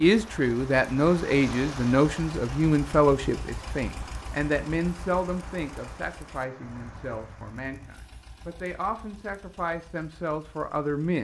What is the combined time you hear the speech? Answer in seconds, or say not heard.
11 s.